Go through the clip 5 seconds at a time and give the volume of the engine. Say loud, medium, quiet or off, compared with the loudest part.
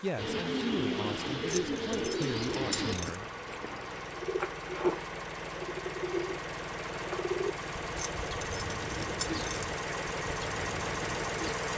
medium, loud, loud.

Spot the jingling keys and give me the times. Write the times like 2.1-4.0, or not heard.
1.4-3.1, 8.2-9.8.